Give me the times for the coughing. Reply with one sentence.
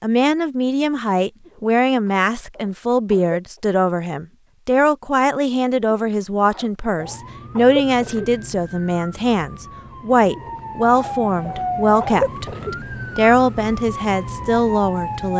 The coughing can be heard from 1.4 to 3.6 s, from 5.8 to 8.3 s and from 10.3 to 12.8 s.